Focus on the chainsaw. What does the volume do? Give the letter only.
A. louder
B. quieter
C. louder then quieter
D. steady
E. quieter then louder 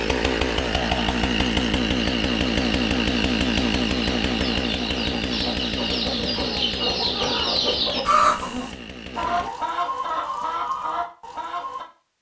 B.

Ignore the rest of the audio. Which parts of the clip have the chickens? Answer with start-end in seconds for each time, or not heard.
2.1-11.8.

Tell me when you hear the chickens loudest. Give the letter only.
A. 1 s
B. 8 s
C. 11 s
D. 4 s
B.